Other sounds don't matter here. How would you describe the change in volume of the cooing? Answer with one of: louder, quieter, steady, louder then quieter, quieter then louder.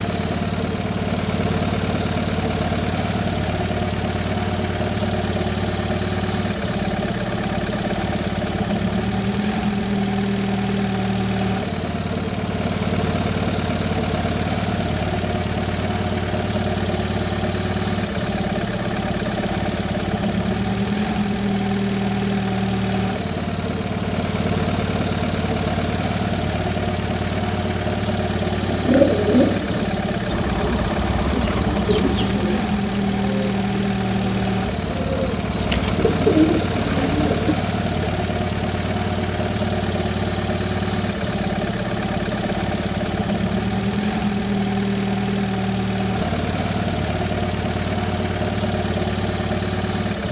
quieter then louder.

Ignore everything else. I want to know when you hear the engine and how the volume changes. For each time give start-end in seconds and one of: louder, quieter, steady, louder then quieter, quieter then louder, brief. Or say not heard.
0.0-50.2 steady.